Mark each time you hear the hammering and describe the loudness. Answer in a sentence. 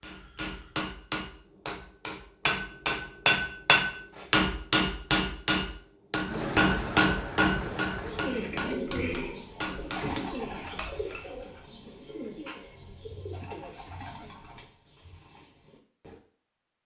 The hammering can be heard from 0.0 to 11.2 s, getting louder then quieter.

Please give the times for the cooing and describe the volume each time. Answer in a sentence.
The cooing can be heard from 7.5 to 16.2 s, getting quieter.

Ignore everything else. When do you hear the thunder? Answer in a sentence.
The thunder can be heard from 6.2 to 8.2 s.